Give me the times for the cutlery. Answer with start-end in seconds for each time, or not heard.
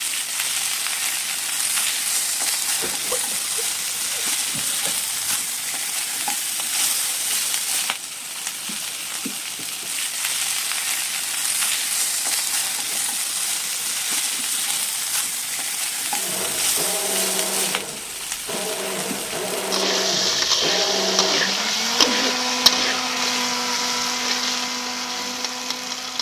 not heard.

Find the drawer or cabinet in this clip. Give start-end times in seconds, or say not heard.
not heard.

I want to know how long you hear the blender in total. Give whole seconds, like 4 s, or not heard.
10 s.